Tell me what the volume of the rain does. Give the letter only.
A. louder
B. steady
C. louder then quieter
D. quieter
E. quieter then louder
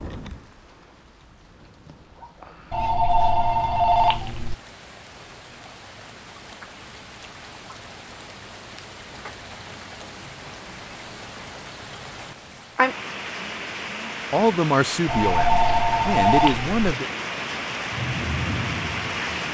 A.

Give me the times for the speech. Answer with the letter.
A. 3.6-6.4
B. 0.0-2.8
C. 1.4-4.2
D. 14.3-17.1
D.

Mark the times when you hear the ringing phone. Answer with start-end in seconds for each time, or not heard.
2.7-4.5, 15.1-16.8.